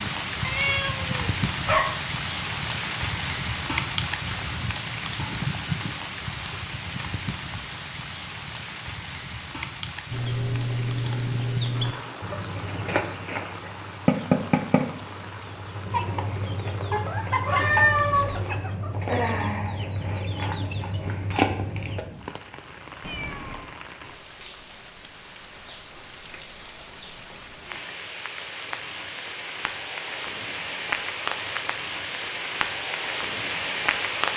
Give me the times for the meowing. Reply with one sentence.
The meowing can be heard from 0.4 to 2.0 s, from 17.4 to 18.4 s and from 23.0 to 23.8 s.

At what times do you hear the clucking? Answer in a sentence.
The clucking can be heard from 10.1 to 22.1 s.